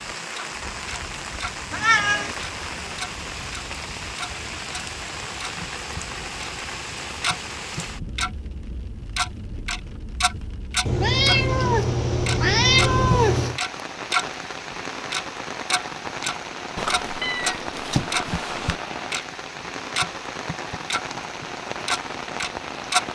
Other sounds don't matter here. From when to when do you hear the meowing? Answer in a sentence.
The meowing can be heard from 1.7 to 2.4 s, from 10.8 to 13.6 s and from 16.8 to 18.8 s.